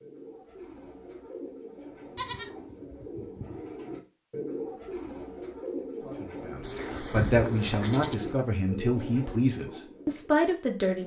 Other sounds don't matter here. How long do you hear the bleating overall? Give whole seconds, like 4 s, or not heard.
3 s.